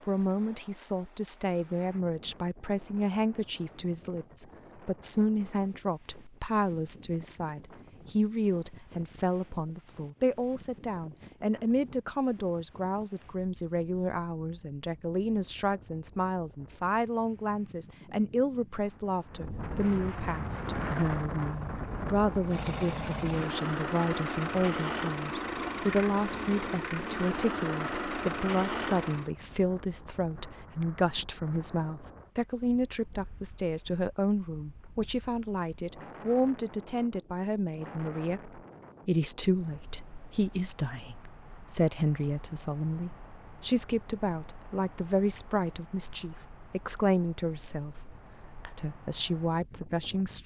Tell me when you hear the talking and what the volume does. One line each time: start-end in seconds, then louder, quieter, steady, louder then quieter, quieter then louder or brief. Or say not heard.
0.1-50.4 steady.